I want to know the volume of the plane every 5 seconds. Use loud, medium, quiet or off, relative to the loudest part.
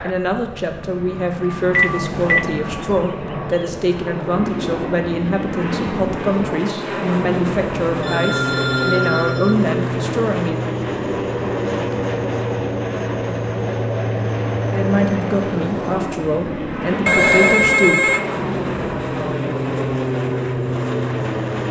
medium, loud, loud, loud, loud.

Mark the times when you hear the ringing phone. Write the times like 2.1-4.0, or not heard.
1.7-2.5, 8.0-9.6, 17.1-18.2.